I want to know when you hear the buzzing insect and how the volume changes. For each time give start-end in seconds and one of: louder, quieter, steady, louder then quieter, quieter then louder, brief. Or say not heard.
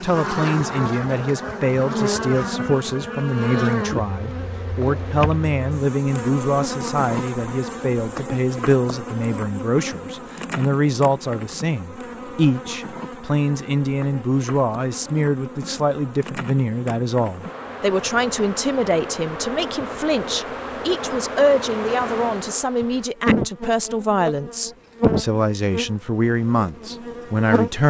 0.0-27.8 quieter then louder.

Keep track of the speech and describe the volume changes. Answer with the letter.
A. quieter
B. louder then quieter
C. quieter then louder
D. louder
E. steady
E.